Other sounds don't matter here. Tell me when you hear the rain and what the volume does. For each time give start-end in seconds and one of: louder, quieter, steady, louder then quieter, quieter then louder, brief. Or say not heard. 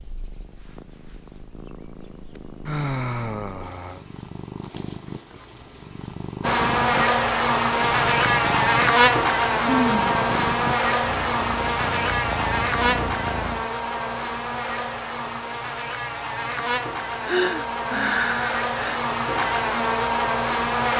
not heard.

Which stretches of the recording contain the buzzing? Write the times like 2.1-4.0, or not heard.
6.4-20.9.